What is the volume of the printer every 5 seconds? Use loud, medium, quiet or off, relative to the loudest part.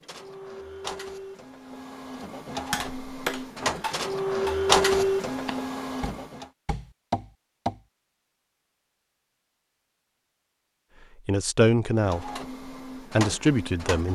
loud, loud, medium.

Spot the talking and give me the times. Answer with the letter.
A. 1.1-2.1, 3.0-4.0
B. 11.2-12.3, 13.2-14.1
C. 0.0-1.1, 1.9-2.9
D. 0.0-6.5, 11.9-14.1
B.